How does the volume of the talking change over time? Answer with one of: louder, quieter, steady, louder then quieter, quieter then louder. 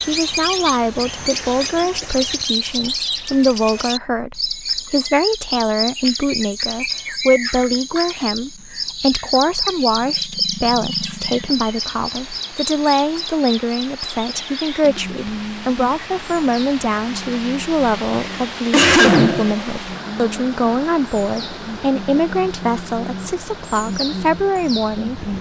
steady.